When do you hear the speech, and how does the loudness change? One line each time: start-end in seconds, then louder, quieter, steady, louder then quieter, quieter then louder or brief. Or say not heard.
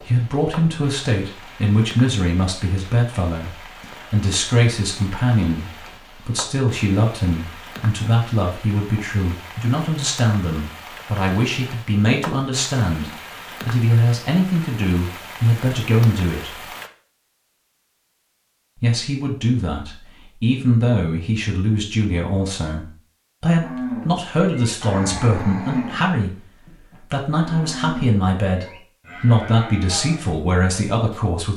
0.0-16.6 steady
18.8-31.5 steady.